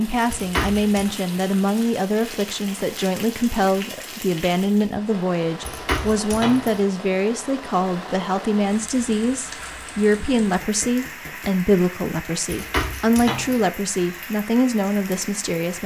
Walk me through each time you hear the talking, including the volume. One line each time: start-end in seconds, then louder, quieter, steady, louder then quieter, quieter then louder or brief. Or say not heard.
0.0-15.8 steady.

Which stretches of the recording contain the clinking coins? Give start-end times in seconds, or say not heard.
0.3-1.1, 5.6-6.8, 12.4-13.7.